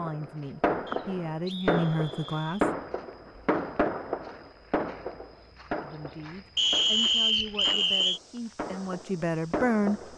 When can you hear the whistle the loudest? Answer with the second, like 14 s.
7 s.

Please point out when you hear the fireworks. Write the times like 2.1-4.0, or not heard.
0.0-10.1.